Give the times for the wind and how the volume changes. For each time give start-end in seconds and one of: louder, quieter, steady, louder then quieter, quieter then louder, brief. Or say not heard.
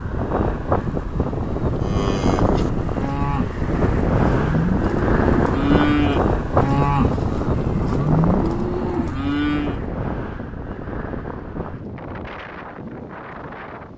0.0-13.9 quieter.